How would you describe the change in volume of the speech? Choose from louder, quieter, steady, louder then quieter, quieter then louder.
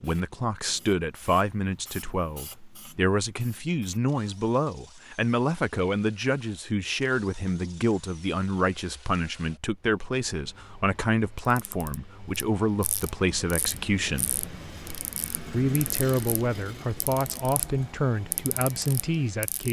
steady.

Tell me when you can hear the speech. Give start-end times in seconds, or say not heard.
0.0-14.3, 15.5-19.6.